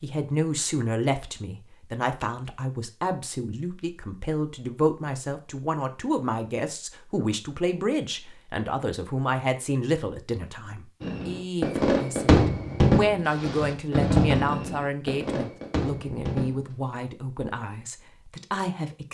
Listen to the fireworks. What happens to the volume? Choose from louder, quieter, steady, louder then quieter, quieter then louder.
quieter.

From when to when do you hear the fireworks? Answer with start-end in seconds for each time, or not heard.
11.0-16.7.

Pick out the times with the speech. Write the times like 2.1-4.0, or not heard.
0.0-19.0.